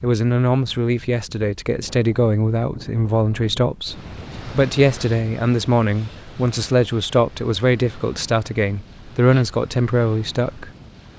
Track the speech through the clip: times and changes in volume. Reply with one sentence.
The speech can be heard from 0.0 to 10.7 s, at a steady volume.